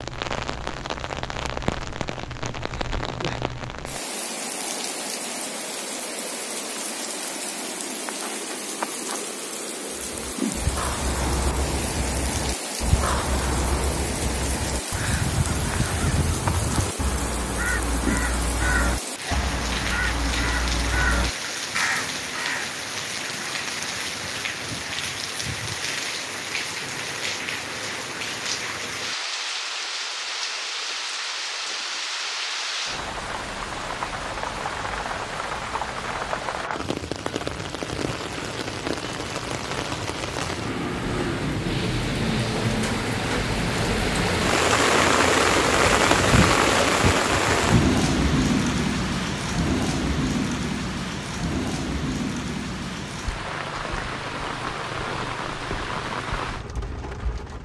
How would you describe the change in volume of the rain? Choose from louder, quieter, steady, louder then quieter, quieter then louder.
louder.